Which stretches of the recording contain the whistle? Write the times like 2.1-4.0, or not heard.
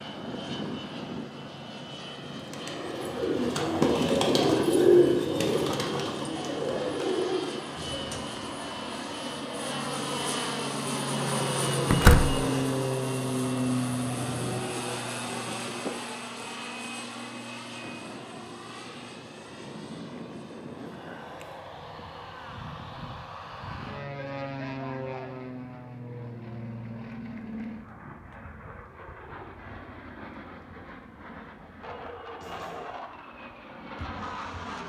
not heard.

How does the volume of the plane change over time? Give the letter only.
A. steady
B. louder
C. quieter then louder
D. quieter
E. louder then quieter
E.